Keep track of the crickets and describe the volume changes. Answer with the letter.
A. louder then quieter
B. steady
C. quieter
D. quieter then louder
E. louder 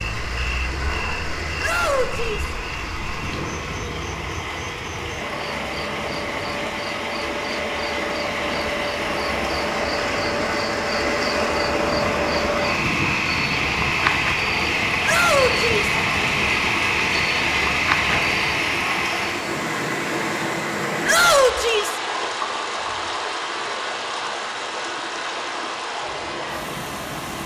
E.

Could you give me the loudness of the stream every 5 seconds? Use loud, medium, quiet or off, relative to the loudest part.
medium, medium, loud, loud, loud, medium.